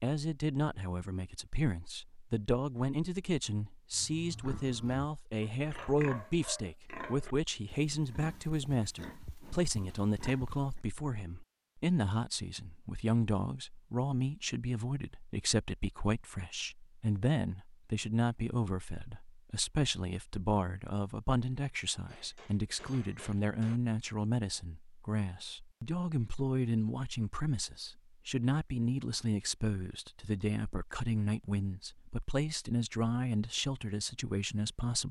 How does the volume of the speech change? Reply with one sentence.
The volume of the speech stays about the same.